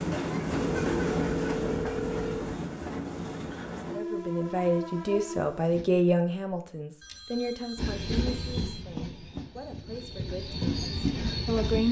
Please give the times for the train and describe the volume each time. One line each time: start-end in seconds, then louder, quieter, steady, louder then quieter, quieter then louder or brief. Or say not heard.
0.0-5.8 quieter
7.8-11.8 quieter then louder.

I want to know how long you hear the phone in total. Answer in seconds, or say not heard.
4 s.